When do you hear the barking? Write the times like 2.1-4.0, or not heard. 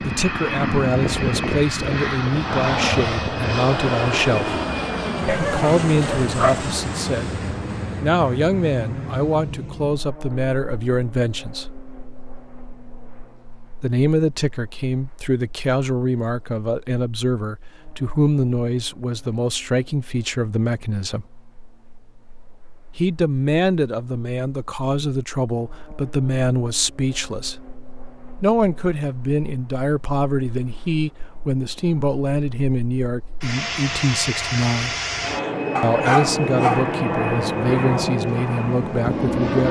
5.2-6.7, 35.8-36.9.